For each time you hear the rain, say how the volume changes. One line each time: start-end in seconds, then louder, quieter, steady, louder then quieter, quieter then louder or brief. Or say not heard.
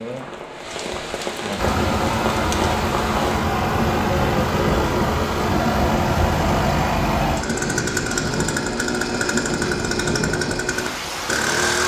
0.0-11.8 steady.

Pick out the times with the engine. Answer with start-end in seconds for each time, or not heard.
1.6-11.8.